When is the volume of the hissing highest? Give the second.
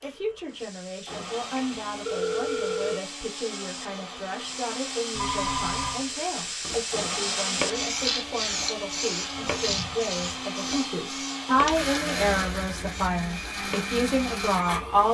8 s.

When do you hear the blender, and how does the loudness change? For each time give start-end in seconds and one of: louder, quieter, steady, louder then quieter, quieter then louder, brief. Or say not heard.
0.0-15.1 louder.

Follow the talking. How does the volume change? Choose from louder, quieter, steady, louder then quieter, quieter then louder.
louder.